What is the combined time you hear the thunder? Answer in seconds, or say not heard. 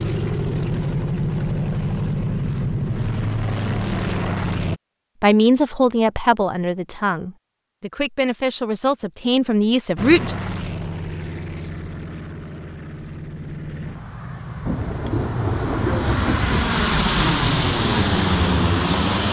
2 s.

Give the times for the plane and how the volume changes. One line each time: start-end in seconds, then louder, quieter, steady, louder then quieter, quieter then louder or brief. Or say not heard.
0.0-4.8 steady
9.9-19.2 louder.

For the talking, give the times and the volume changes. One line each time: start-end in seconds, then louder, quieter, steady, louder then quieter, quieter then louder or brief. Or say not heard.
5.2-10.3 quieter then louder.